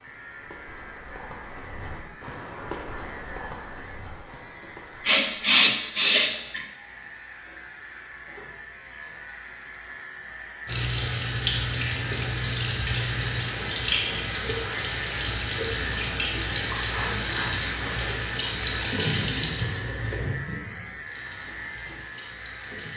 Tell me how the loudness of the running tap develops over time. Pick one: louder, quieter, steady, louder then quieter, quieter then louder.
quieter.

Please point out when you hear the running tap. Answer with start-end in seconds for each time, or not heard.
10.7-22.9.